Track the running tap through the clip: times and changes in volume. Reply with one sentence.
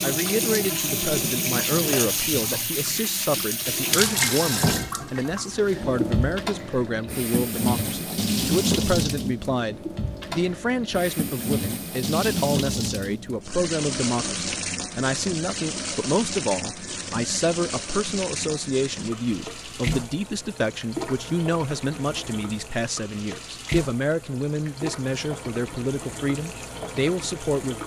The running tap can be heard from 0.0 to 27.8 s, getting quieter.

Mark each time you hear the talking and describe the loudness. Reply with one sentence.
The talking can be heard from 0.0 to 27.8 s, at a steady volume.